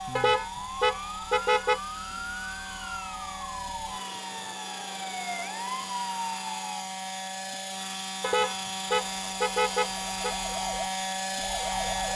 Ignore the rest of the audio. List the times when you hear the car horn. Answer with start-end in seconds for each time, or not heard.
0.1-1.8, 8.2-10.3.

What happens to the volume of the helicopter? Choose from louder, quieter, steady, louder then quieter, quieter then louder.
louder.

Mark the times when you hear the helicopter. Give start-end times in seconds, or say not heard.
0.0-12.1.